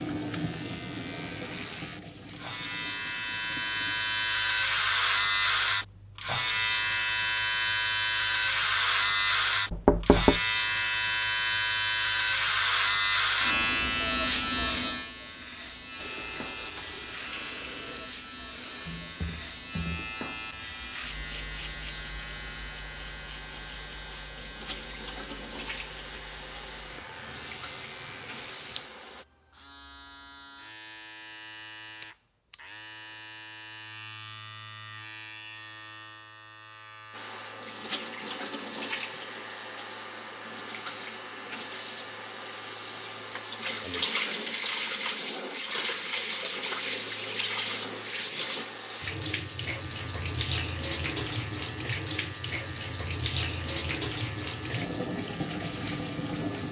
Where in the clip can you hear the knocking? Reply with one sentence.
You can hear the knocking from 9.7 to 10.4 s.